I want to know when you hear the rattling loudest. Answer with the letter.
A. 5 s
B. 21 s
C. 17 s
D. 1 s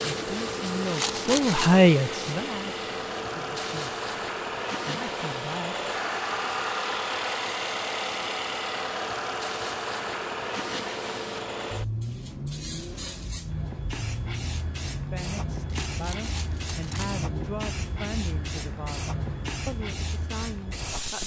D.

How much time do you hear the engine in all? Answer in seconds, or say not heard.
20 s.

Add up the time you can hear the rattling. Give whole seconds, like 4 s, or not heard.
2 s.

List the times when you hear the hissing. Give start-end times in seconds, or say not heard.
0.0-21.2.